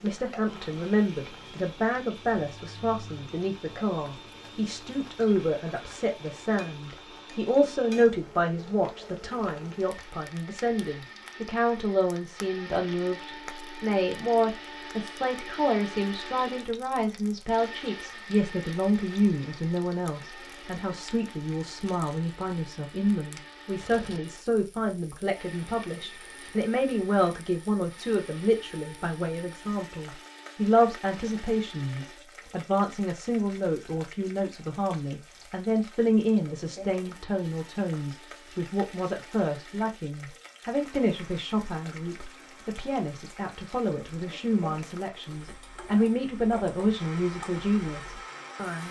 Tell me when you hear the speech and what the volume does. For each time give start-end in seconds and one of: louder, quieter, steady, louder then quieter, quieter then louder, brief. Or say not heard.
0.0-48.8 steady.